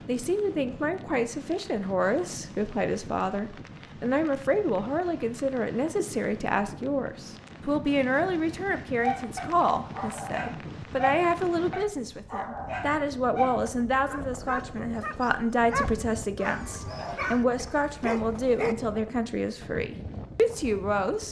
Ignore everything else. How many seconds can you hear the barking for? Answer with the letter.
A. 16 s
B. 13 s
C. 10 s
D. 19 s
C.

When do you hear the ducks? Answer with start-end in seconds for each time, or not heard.
not heard.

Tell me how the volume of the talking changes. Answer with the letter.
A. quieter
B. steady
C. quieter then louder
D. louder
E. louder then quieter
B.